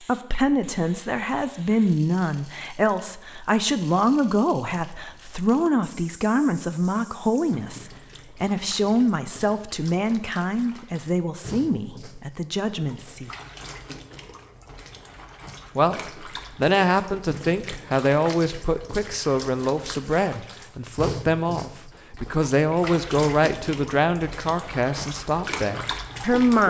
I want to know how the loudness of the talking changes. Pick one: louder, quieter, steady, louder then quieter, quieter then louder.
steady.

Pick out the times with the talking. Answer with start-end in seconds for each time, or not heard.
0.1-13.3, 15.8-26.6.